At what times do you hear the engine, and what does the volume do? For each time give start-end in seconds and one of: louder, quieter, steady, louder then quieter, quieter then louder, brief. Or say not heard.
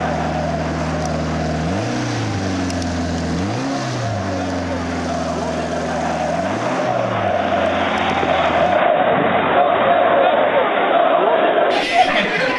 0.0-8.8 quieter.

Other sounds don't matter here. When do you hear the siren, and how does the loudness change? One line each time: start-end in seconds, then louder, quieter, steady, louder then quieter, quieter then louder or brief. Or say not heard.
not heard.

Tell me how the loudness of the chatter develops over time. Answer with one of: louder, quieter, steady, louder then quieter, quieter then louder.
louder.